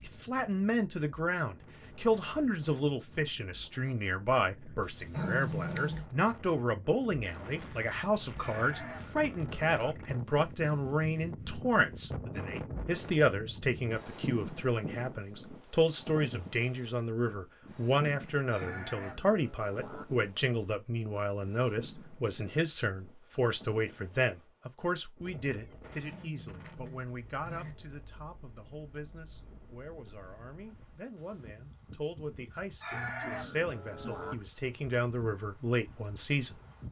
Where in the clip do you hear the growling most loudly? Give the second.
5 s.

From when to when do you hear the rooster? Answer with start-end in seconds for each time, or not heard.
8.3-9.9, 18.5-20.1, 32.8-34.4.